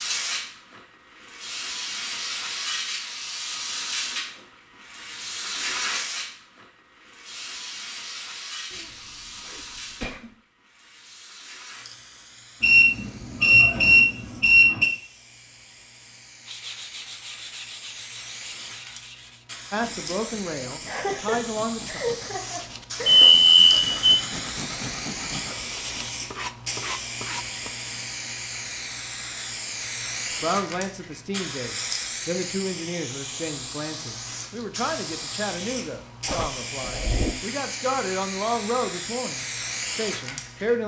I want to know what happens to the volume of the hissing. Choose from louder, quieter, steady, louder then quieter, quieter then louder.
quieter then louder.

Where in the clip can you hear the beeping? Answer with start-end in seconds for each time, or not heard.
12.6-14.9, 23.1-24.2.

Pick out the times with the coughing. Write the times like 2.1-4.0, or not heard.
8.7-10.3, 20.9-23.3, 36.2-37.4.